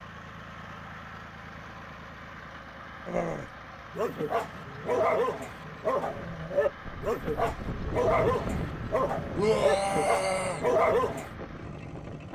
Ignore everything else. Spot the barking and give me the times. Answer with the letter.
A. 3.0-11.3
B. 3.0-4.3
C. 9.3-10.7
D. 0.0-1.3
A.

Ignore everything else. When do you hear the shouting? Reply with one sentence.
The shouting can be heard from 9.3 to 10.7 s.